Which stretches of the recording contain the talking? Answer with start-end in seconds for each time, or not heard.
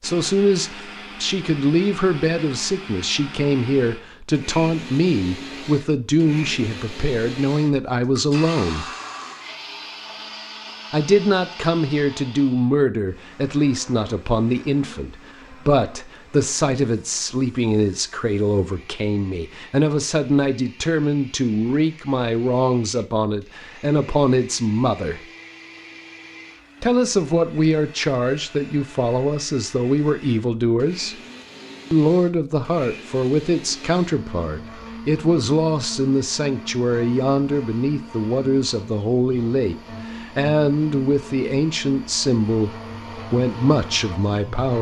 0.0-8.9, 10.9-25.2, 26.8-31.2, 31.9-44.7.